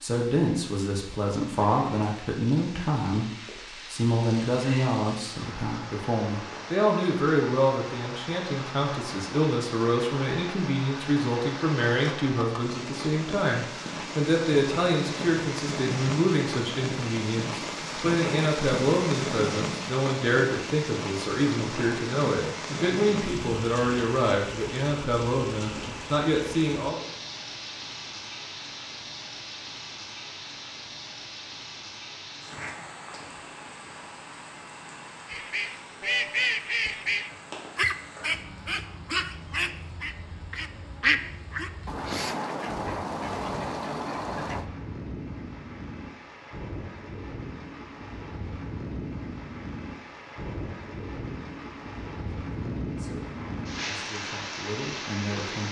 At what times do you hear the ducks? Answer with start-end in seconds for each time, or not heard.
35.2-44.6.